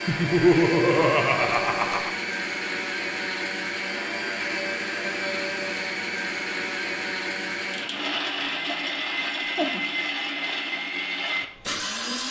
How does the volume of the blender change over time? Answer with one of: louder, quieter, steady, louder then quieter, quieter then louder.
steady.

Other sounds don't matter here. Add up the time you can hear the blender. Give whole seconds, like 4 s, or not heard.
12 s.